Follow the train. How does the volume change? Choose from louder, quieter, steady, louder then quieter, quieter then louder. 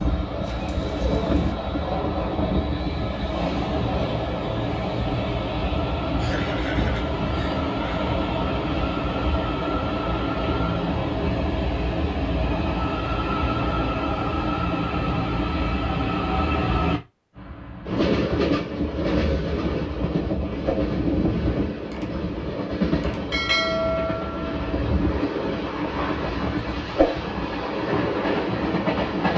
steady.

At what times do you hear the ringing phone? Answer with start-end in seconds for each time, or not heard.
not heard.